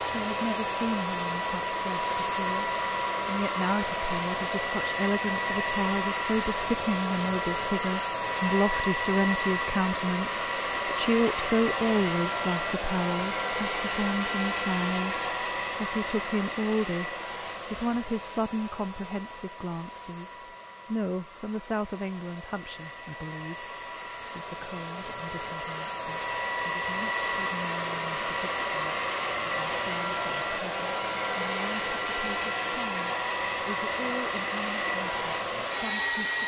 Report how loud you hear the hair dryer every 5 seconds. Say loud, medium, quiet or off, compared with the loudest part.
loud, loud, loud, medium, quiet, loud, loud, loud.